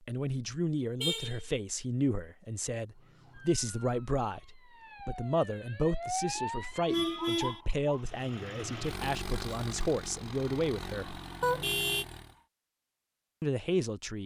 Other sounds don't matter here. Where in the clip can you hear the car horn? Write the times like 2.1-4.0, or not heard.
1.0-1.4, 6.2-7.6, 11.4-12.1.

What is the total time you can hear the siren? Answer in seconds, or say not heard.
5 s.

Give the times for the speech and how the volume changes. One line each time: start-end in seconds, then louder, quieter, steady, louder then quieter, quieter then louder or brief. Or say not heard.
0.1-11.2 steady
13.4-14.2 brief.